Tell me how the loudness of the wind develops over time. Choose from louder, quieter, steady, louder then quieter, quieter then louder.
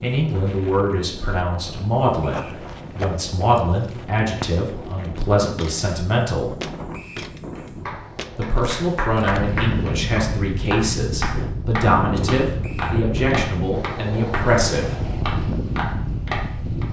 louder.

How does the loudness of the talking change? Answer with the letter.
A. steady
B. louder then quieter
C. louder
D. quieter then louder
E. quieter
A.